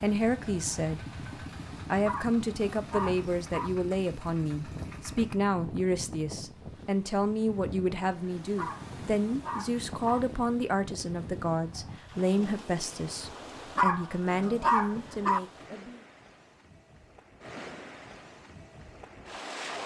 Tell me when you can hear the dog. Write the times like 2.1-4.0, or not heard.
2.0-3.7, 8.6-10.2, 13.8-15.4.